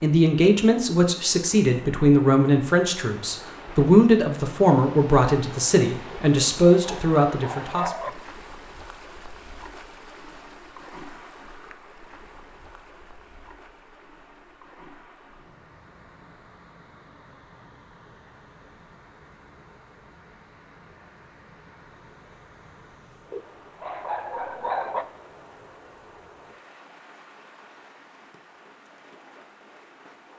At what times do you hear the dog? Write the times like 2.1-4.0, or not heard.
6.1-8.1, 23.3-25.1.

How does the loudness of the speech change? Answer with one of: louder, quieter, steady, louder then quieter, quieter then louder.
steady.